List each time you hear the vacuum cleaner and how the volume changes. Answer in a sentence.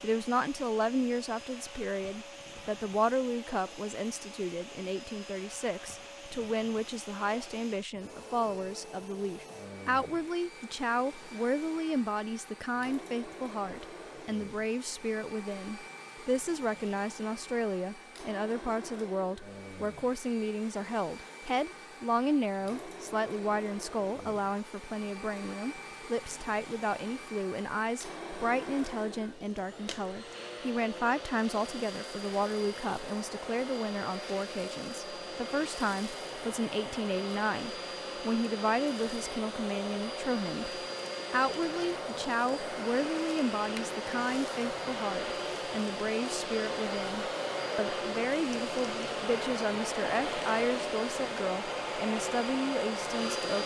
You can hear the vacuum cleaner from 0.0 to 53.6 s, getting louder.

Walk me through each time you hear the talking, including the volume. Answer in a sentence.
You can hear the talking from 0.0 to 53.6 s, at a steady volume.